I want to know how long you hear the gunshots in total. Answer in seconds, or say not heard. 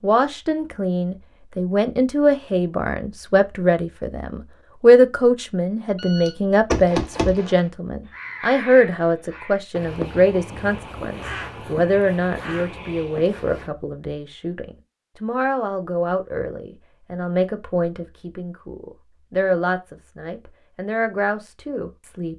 2 s.